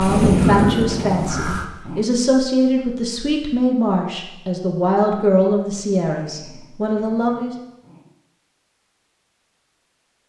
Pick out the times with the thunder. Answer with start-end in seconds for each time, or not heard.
0.1-1.2.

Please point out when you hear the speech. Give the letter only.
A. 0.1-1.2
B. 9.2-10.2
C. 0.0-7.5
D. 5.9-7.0
C.